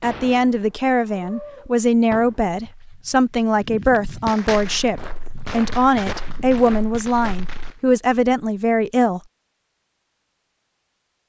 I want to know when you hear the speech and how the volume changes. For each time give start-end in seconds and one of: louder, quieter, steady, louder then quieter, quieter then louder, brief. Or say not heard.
0.0-9.2 steady.